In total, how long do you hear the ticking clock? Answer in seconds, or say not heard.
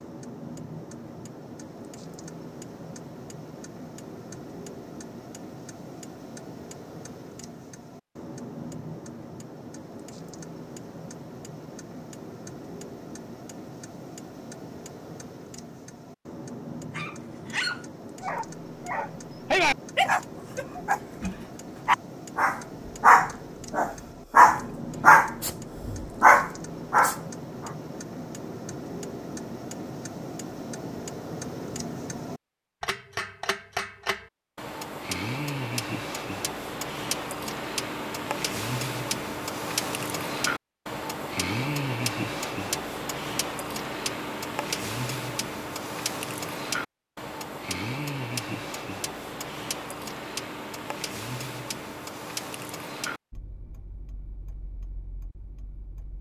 56 s.